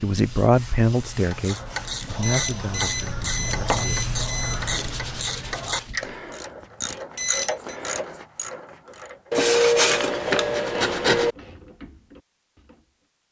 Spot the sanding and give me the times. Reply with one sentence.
You can hear the sanding from 0.2 to 2.1 s, from 4.8 to 6.0 s and from 9.3 to 11.3 s.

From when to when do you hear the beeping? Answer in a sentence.
The beeping can be heard from 2.2 to 4.7 s and from 7.2 to 7.8 s.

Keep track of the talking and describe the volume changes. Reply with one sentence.
The volume of the talking goes down.